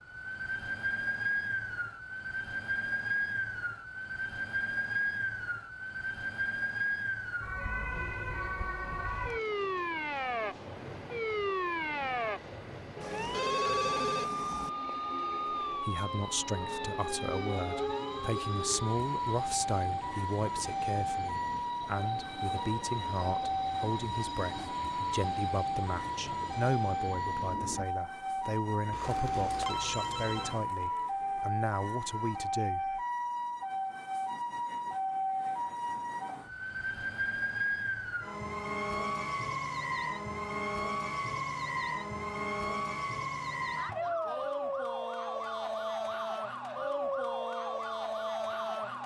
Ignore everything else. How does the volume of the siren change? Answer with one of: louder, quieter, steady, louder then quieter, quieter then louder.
steady.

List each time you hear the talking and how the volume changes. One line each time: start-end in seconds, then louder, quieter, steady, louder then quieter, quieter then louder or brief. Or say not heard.
15.7-33.0 steady.